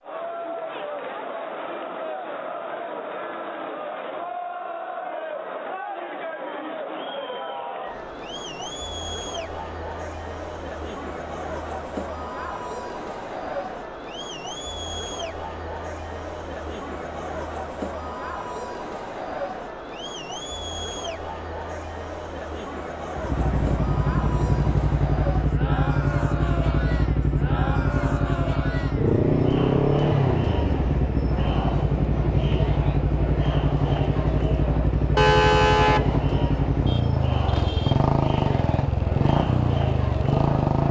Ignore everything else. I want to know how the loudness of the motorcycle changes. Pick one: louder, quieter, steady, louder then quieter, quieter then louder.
steady.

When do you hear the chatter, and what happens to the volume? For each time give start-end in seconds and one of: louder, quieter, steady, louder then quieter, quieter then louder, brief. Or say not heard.
0.0-40.8 steady.